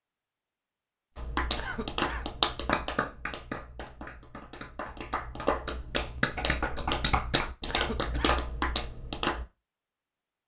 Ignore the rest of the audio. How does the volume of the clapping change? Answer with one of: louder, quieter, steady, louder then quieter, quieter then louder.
quieter then louder.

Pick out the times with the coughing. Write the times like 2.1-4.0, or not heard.
1.6-2.4, 7.7-8.4.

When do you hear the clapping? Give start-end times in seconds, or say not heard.
1.1-9.4.